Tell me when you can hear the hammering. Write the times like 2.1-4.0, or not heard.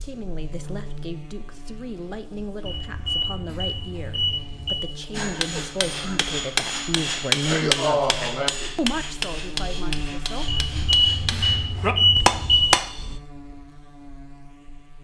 5.1-13.2.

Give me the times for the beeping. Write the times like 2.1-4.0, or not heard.
2.6-4.8, 10.4-12.7.